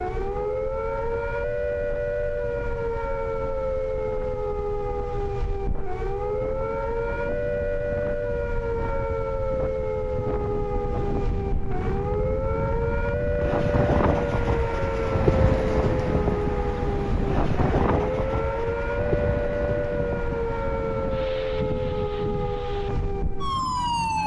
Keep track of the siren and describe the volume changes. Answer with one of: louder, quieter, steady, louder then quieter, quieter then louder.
steady.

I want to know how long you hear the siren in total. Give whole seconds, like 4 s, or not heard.
24 s.